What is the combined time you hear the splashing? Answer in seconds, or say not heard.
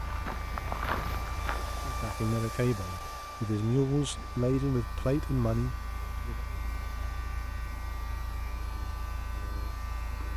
not heard.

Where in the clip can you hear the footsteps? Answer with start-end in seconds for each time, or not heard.
0.0-2.1.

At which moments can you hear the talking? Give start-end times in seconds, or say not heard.
1.9-6.4.